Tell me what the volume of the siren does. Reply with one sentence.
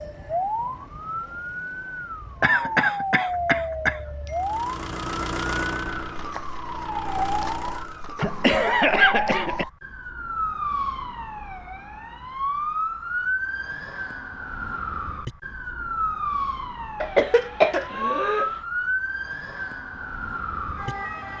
The volume of the siren stays about the same.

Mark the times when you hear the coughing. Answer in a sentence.
The coughing can be heard from 2.4 to 4.3 s, from 8.2 to 9.7 s and from 17.0 to 18.5 s.